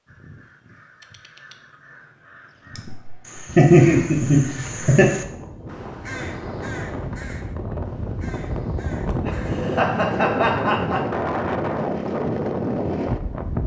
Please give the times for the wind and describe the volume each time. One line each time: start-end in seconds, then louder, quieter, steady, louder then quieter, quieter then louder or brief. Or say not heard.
3.5-13.6 louder.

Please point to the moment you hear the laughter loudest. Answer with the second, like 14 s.
4 s.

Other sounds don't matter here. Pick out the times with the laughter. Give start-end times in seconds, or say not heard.
2.8-5.1, 9.1-11.1.